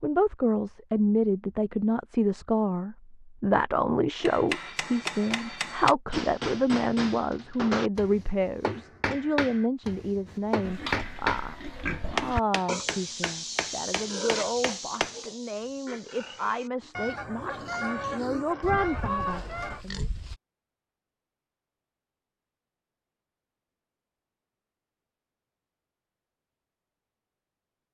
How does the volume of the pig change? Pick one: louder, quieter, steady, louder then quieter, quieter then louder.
quieter then louder.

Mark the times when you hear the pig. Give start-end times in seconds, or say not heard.
10.2-20.4.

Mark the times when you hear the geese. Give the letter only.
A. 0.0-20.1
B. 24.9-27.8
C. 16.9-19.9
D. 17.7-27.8
C.